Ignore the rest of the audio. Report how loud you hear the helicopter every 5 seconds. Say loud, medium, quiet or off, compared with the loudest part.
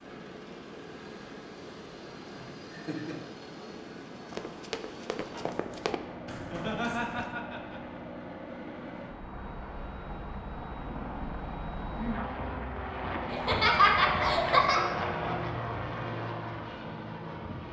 medium, medium, loud, loud.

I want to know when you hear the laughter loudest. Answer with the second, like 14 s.
14 s.